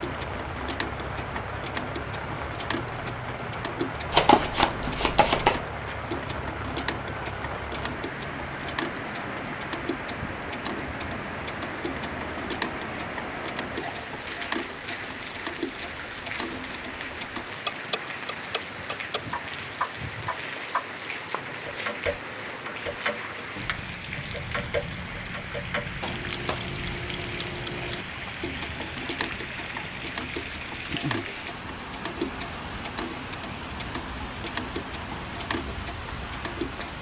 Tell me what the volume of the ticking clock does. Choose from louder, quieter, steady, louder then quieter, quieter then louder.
steady.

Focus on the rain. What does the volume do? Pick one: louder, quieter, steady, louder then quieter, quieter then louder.
steady.